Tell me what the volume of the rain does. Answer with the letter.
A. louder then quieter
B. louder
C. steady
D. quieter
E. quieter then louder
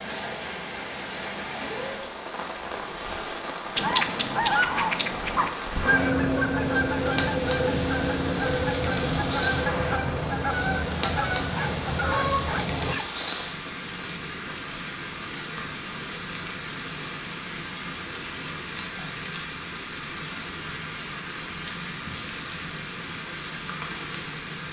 C.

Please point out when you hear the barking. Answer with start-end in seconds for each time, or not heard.
11.6-13.1.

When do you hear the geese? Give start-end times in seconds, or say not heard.
3.8-12.9.